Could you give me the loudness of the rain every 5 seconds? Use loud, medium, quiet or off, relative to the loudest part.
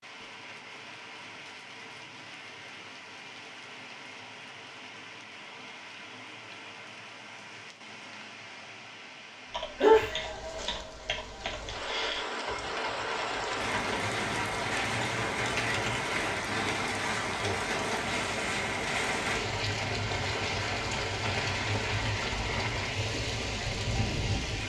quiet, quiet, loud, loud, loud.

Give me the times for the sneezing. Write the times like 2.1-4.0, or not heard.
9.8-10.7.